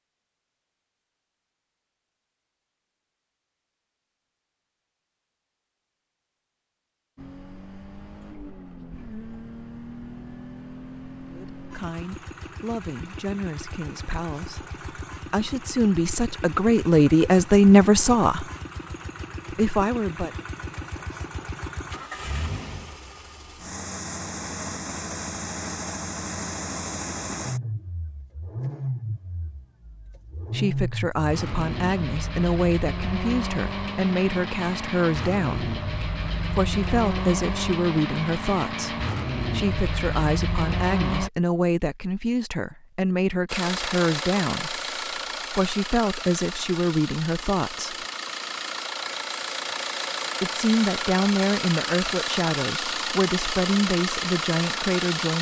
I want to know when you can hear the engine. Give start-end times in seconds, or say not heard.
7.2-41.3, 43.5-55.3.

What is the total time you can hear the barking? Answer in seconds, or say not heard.
not heard.